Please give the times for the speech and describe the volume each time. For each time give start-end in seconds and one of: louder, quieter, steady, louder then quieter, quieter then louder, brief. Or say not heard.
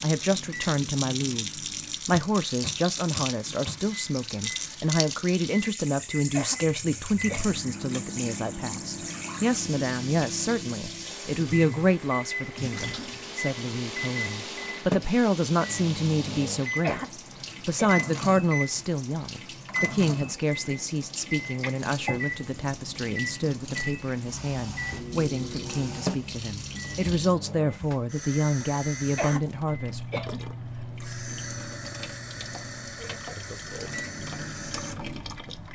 0.0-30.0 steady.